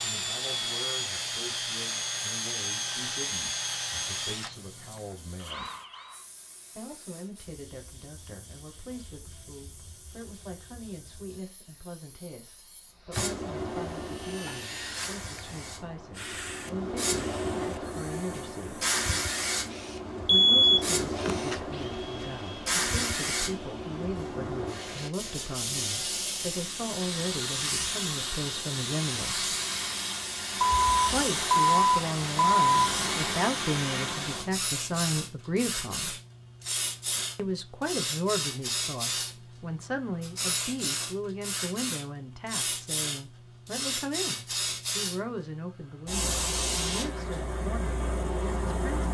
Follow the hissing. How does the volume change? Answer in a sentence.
The volume of the hissing goes up.